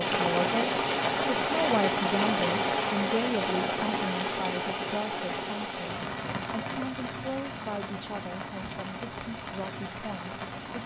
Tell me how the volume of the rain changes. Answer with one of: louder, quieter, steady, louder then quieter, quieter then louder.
quieter.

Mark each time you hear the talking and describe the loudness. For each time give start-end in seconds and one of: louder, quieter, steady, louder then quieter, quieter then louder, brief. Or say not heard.
0.1-10.8 quieter.